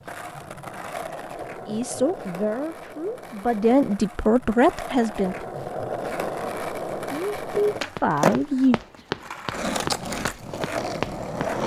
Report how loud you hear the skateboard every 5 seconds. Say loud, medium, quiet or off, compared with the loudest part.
medium, loud, loud.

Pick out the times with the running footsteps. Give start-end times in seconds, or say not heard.
8.0-11.6.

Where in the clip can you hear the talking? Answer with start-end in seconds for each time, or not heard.
1.6-5.3, 7.1-8.8.